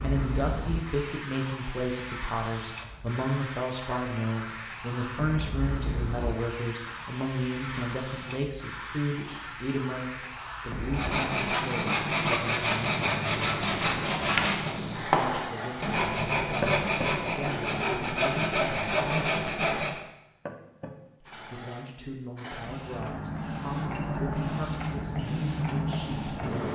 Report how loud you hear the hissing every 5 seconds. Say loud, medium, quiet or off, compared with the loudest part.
medium, medium, medium, loud, loud, loud.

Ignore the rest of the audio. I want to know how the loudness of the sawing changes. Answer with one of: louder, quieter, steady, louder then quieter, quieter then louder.
steady.